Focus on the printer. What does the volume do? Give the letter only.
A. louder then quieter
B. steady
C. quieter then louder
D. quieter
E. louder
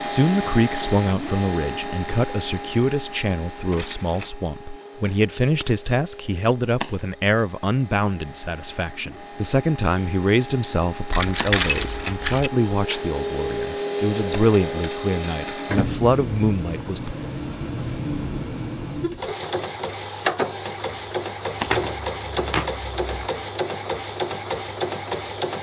C.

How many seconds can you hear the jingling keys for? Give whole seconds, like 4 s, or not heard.
4 s.